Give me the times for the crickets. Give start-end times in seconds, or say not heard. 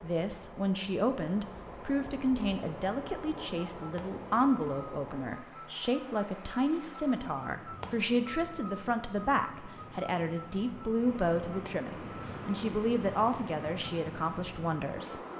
3.0-15.3.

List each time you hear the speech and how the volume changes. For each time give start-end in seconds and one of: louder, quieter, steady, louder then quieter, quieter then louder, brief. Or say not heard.
0.0-15.2 steady.